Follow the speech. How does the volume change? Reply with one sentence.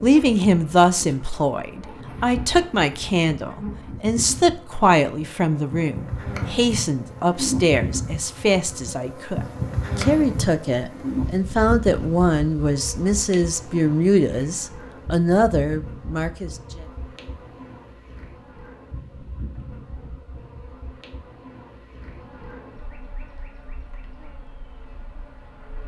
The loudness of the speech stays about the same.